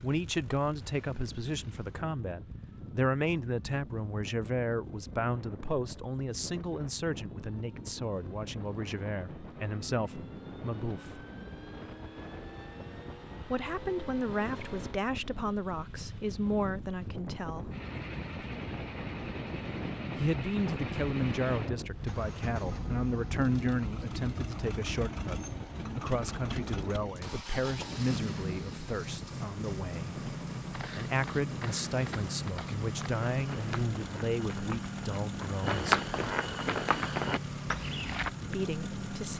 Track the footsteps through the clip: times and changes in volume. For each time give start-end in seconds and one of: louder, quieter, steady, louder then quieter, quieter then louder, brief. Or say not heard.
30.6-38.3 louder.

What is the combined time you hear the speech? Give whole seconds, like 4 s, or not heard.
31 s.